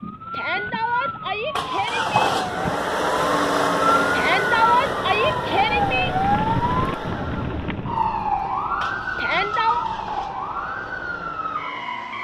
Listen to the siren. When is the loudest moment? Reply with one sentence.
The loudest moment of the siren is at 6 seconds.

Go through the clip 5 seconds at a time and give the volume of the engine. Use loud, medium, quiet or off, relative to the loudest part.
loud, medium, quiet.